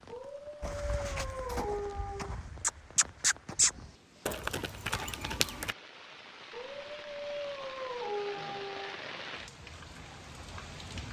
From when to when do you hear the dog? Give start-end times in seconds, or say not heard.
0.1-2.4, 6.5-9.0.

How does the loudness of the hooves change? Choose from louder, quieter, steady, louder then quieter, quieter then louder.
louder then quieter.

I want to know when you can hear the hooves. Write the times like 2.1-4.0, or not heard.
0.6-5.8.